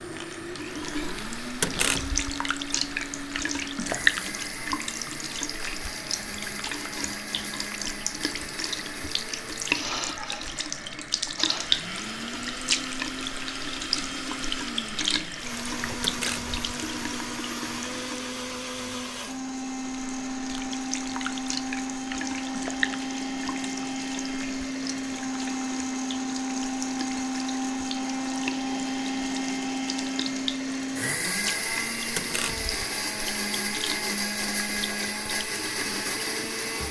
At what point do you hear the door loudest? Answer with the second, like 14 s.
2 s.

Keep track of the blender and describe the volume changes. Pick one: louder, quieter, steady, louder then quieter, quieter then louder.
louder.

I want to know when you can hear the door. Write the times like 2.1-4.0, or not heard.
1.6-2.3, 16.0-16.6, 32.1-32.8.